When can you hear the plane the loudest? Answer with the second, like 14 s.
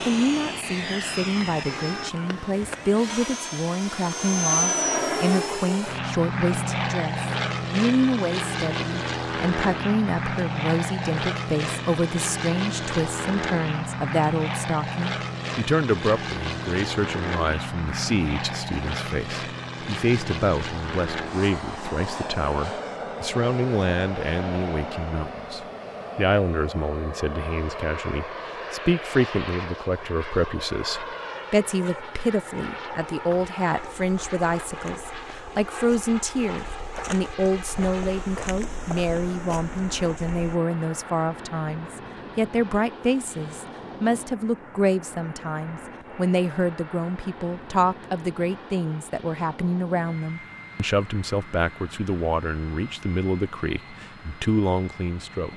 5 s.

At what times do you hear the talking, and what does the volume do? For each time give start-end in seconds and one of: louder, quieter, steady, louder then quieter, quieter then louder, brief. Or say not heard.
0.0-55.5 steady.